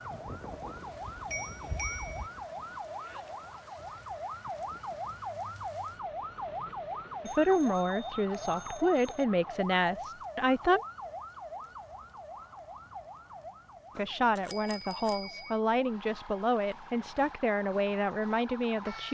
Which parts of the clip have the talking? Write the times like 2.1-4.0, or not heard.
7.2-10.8, 13.9-19.0.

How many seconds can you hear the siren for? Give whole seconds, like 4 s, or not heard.
19 s.